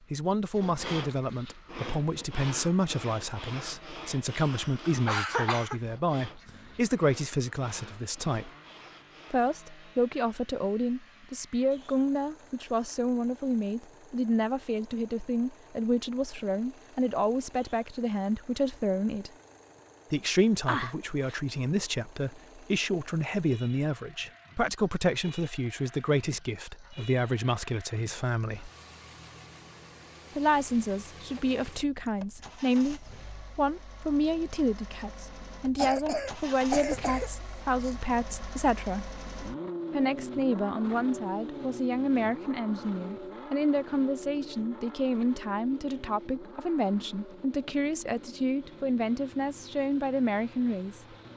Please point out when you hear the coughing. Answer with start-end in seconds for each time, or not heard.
4.3-5.8, 20.6-21.4, 35.8-38.0.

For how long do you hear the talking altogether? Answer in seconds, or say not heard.
47 s.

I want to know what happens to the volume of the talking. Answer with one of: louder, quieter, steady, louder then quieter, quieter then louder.
steady.